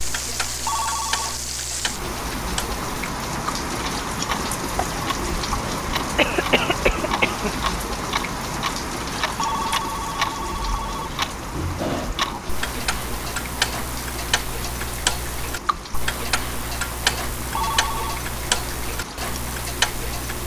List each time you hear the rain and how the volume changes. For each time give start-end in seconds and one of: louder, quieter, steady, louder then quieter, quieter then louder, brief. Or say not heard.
0.0-20.4 quieter.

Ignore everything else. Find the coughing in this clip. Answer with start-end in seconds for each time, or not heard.
6.2-7.5.